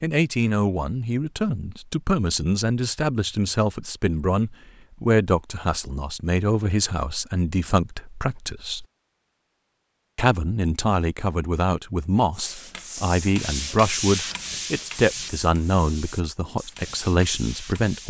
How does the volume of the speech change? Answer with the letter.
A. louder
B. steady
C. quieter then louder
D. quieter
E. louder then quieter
B.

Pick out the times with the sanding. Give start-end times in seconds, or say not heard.
12.3-18.0.